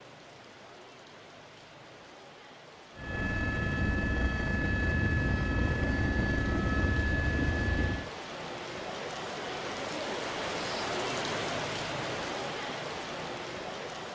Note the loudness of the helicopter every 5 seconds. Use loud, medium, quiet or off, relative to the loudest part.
loud, loud, off.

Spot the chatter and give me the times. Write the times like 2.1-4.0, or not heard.
not heard.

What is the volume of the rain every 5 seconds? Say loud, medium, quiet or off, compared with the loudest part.
quiet, medium, loud.